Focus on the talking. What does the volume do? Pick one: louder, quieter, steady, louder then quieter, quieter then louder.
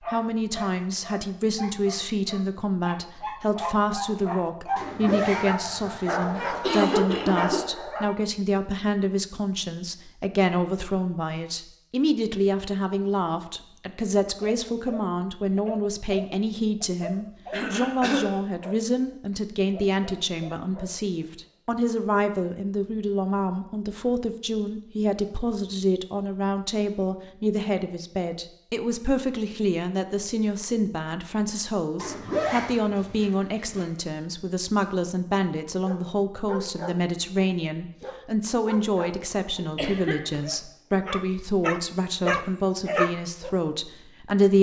steady.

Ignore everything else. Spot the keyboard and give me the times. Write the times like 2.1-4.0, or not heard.
not heard.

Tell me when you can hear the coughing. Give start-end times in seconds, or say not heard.
6.0-7.6, 17.5-18.3, 39.8-40.4.